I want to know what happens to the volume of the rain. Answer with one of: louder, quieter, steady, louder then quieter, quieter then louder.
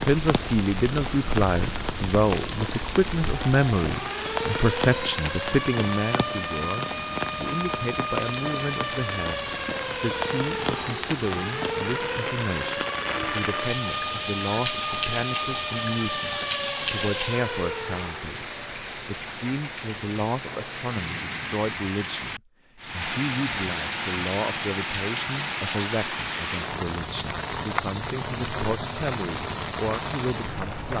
steady.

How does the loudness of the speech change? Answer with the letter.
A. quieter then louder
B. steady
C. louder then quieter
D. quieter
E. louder
D.